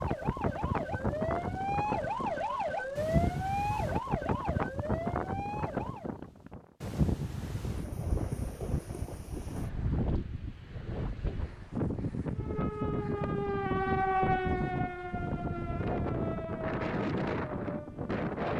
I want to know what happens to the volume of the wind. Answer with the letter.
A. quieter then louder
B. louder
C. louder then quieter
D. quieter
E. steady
E.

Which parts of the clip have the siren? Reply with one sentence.
The siren can be heard from 0.0 to 6.2 s and from 12.3 to 18.2 s.